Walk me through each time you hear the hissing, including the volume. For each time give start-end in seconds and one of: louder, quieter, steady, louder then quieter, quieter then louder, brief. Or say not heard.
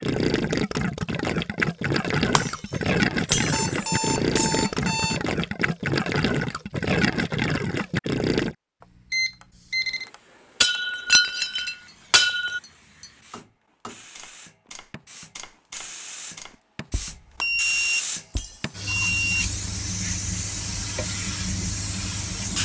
9.7-22.6 louder.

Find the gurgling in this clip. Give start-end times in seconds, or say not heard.
0.0-8.6.